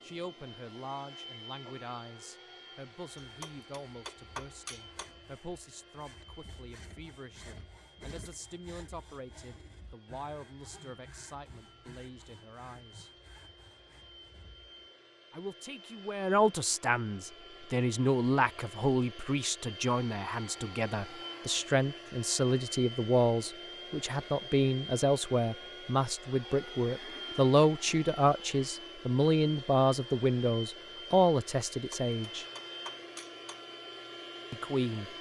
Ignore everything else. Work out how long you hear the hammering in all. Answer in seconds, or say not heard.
4 s.